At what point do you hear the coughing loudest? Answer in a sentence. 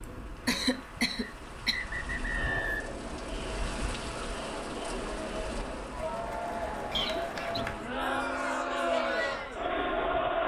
The loudest moment of the coughing is at 1 second.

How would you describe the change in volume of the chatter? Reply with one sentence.
The loudness of the chatter goes up.